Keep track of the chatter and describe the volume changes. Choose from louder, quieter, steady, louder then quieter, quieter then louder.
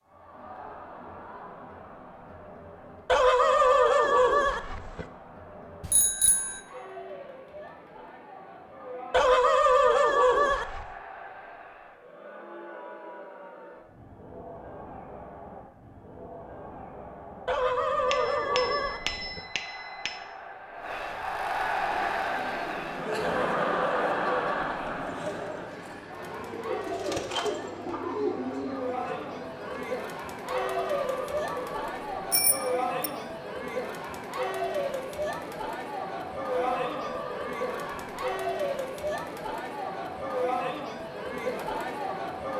louder.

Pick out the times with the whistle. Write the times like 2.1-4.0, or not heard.
not heard.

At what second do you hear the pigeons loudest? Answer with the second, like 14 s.
28 s.